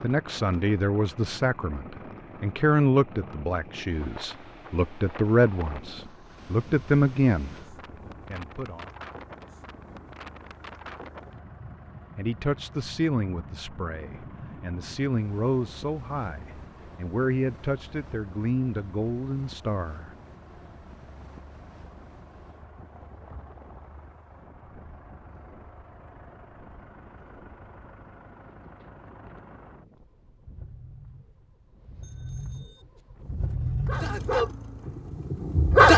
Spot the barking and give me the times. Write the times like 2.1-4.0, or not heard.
33.4-35.9.